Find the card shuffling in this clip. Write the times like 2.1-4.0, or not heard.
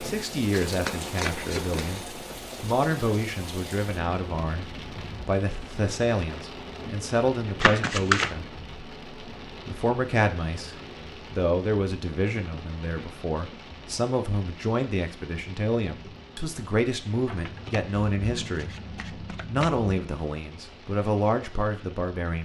0.5-2.0, 7.6-8.3, 17.2-19.9.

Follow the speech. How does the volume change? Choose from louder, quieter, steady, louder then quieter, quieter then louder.
steady.